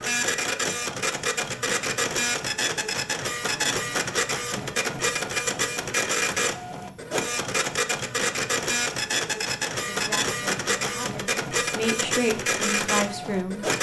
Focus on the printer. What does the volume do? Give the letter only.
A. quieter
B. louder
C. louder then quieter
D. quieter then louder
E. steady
E.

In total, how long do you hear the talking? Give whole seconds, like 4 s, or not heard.
4 s.